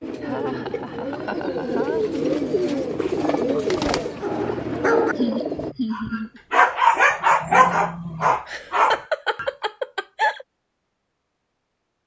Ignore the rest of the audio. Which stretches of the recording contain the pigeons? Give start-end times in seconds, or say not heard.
0.0-5.8.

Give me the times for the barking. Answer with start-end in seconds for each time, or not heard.
4.2-9.4.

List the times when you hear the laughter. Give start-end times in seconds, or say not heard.
0.2-2.2, 5.2-6.4, 8.4-10.4.